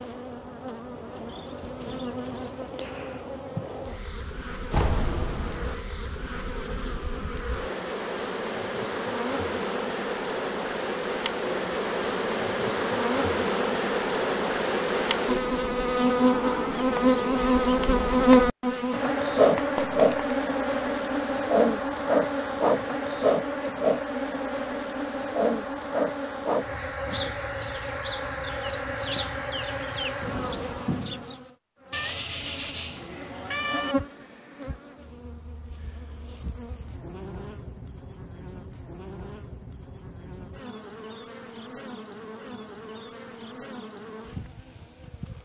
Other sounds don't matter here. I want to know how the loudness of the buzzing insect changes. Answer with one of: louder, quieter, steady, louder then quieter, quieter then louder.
louder then quieter.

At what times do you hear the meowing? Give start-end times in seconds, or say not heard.
4.7-5.8, 19.6-20.4, 31.9-34.0.